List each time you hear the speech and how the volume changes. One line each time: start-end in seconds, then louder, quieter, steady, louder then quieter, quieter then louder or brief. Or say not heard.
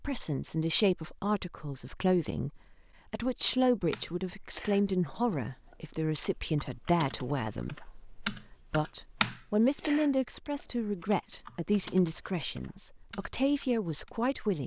0.0-14.6 steady.